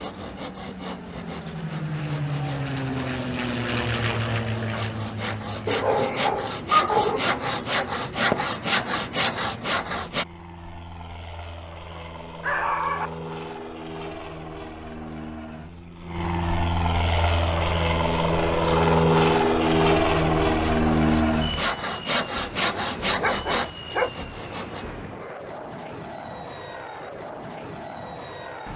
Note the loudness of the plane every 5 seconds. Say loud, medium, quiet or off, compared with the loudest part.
medium, quiet, quiet, loud, loud, quiet.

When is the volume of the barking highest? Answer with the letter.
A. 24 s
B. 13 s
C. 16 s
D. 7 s
D.